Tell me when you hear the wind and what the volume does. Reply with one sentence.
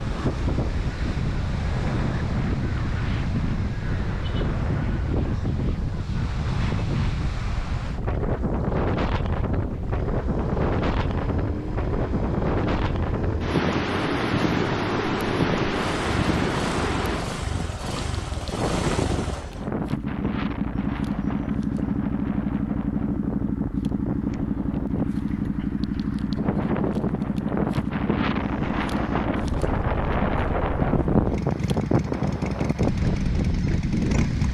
You can hear the wind from 0.0 to 34.4 s, getting quieter then louder.